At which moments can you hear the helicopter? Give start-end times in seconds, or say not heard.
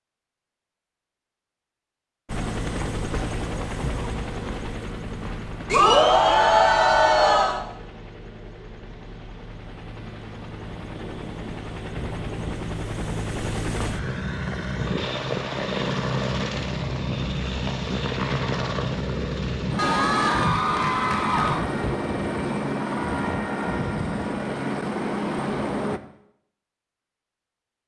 2.2-26.0.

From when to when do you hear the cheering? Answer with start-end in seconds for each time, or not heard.
5.7-7.6, 19.8-21.6.